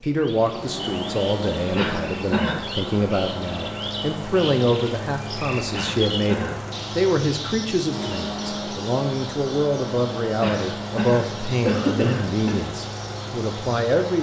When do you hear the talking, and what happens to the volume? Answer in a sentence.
You can hear the talking from 0.0 to 14.1 s, at a steady volume.